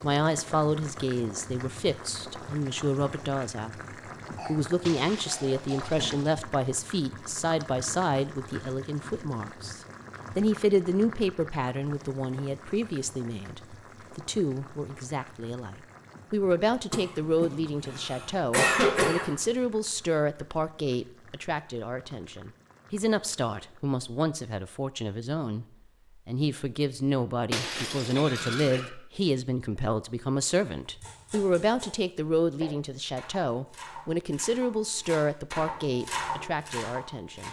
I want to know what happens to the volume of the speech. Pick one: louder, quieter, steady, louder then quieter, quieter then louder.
steady.